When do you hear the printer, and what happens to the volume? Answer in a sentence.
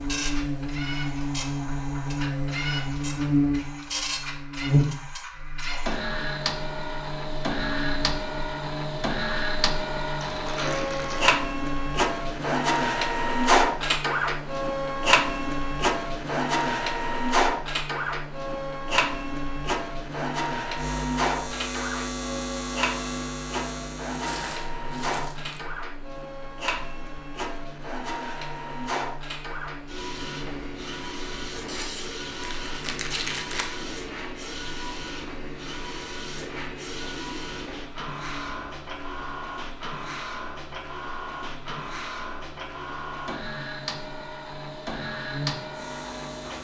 The printer can be heard from 0.0 to 46.6 s, getting louder then quieter.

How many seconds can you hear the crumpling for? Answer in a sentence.
The crumpling can be heard for 5 seconds in total.